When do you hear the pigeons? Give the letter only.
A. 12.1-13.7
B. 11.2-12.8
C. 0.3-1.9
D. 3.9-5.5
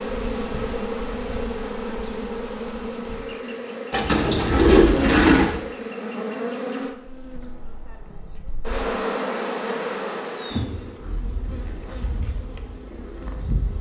D.